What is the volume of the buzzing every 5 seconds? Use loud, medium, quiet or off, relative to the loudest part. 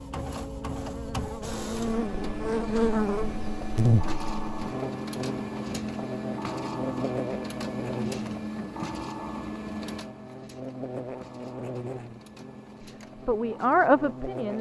loud, medium, medium.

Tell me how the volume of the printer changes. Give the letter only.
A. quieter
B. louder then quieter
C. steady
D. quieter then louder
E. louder
A.